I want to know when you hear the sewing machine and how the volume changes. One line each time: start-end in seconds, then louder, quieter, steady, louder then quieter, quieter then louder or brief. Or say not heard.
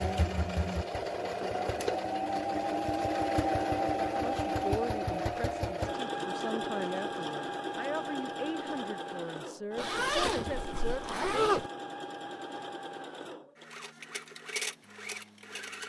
0.0-15.8 quieter.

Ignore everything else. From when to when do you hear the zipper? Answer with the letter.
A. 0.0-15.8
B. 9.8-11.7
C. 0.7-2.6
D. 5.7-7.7
B.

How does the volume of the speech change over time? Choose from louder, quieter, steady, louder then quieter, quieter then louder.
steady.